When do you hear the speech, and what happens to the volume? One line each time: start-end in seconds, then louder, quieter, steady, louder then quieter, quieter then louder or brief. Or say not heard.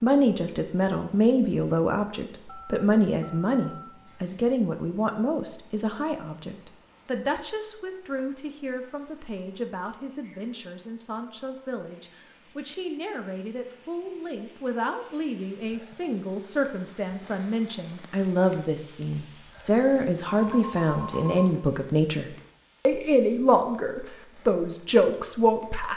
0.0-25.9 quieter then louder.